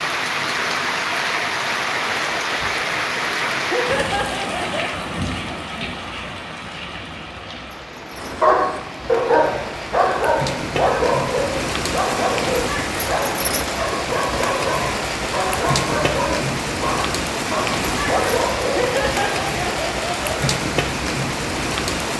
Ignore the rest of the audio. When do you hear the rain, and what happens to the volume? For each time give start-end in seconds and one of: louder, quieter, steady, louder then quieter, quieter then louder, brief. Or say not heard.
0.0-22.1 quieter then louder.